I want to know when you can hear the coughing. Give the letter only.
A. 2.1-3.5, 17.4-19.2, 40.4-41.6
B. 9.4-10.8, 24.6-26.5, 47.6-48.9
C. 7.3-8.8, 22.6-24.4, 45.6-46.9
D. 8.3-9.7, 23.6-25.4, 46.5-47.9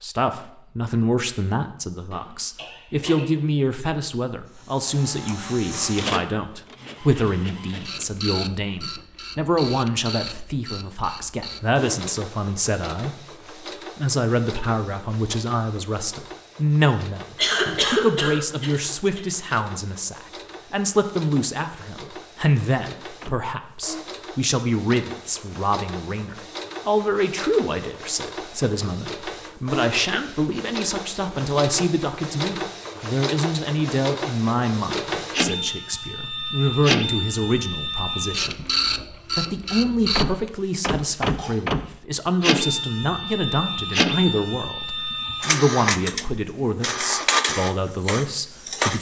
A.